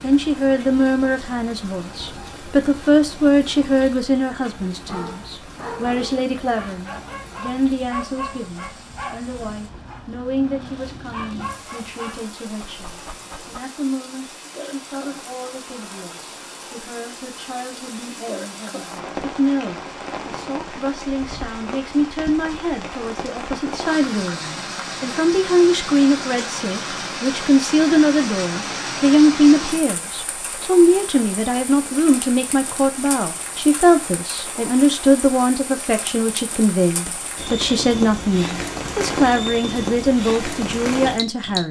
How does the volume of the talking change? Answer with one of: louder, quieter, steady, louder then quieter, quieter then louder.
quieter then louder.